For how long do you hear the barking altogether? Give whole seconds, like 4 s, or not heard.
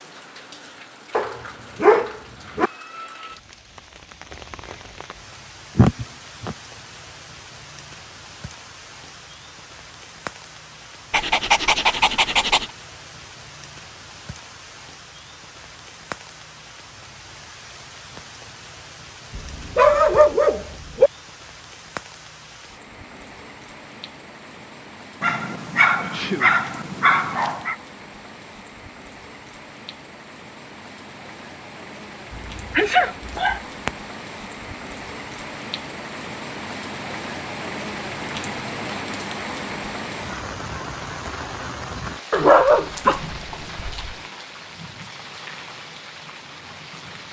11 s.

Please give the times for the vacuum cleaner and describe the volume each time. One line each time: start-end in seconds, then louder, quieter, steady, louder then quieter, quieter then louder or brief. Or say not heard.
not heard.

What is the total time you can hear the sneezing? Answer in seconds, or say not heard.
2 s.